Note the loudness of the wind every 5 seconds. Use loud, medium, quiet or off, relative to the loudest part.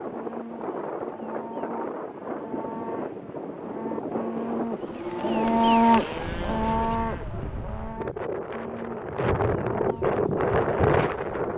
medium, medium, loud.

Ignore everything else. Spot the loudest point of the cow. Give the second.
6 s.